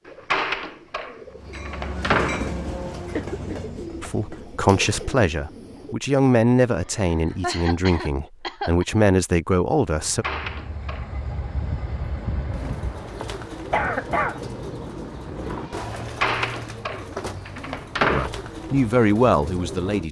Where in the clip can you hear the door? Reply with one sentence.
You can hear the door from 0.1 to 2.5 s, from 10.0 to 11.2 s and from 16.0 to 18.3 s.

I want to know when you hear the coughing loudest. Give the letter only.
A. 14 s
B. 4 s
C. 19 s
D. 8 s
A.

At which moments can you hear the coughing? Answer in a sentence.
You can hear the coughing from 3.1 to 3.8 s, from 7.0 to 8.8 s and from 13.7 to 14.4 s.